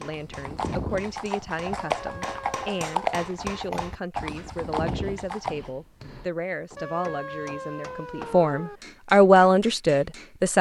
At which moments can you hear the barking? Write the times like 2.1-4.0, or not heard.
not heard.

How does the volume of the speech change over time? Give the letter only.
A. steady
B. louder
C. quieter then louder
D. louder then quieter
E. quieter
B.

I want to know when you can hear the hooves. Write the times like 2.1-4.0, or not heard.
0.1-5.7.